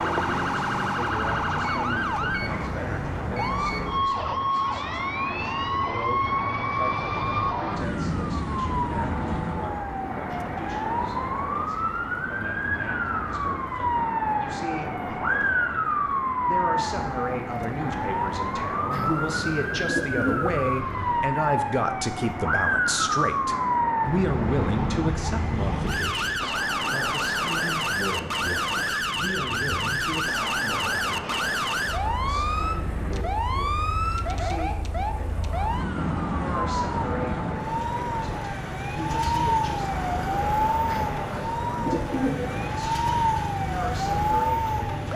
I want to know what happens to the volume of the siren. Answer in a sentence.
The volume of the siren stays about the same.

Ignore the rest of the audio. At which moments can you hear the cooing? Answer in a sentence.
You can hear the cooing from 18.9 to 20.6 s and from 40.9 to 42.7 s.